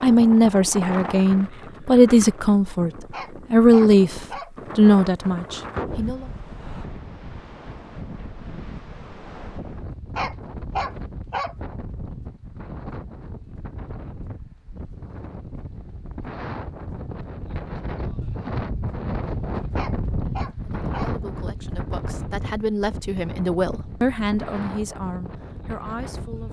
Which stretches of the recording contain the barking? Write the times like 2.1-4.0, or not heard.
3.1-4.5, 10.2-11.6, 19.8-21.1.